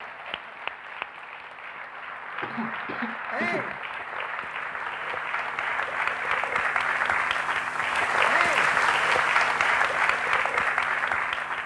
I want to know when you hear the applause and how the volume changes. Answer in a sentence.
You can hear the applause from 0.0 to 11.6 s, getting louder.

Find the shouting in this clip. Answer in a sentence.
The shouting can be heard from 3.3 to 3.8 s and from 8.2 to 8.7 s.